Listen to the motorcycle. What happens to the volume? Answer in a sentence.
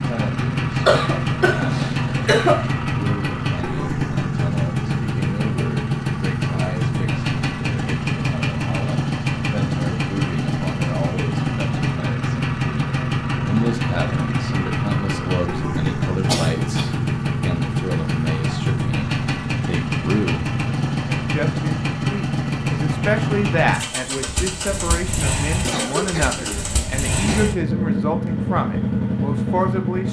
The loudness of the motorcycle stays about the same.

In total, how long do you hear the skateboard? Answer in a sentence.
You can't hear the skateboard here.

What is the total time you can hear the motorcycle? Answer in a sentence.
You can hear the motorcycle for 30 seconds altogether.